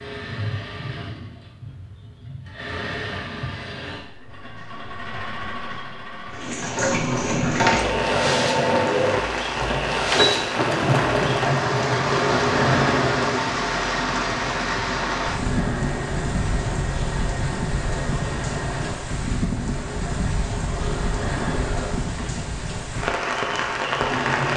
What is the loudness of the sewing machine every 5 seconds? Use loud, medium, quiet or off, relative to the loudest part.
quiet, loud, loud, medium, medium.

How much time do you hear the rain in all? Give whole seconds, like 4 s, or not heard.
18 s.